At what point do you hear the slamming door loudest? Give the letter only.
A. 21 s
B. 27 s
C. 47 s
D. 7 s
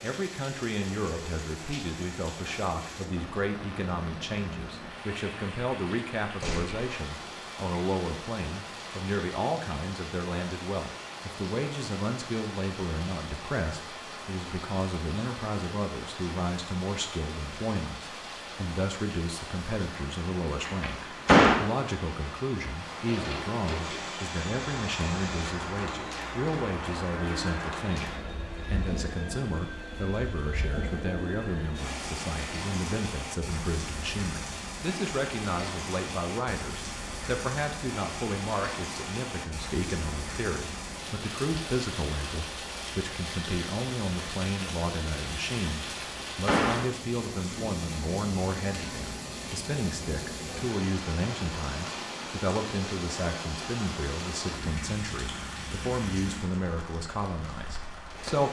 A.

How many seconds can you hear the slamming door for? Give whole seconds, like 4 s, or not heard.
3 s.